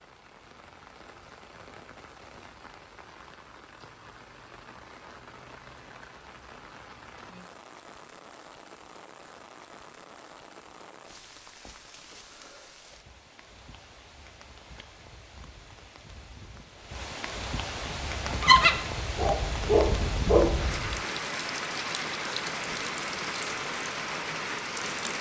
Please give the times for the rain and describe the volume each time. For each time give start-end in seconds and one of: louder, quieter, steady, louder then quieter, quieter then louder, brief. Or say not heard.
0.0-25.1 louder.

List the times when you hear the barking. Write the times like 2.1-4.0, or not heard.
17.9-21.0.